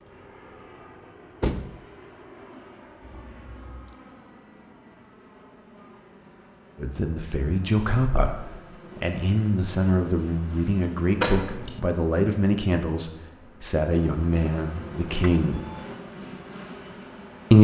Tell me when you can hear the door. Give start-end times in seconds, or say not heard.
1.4-1.8, 11.2-11.8.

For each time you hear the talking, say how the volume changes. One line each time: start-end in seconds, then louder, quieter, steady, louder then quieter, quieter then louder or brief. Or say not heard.
6.8-15.6 steady.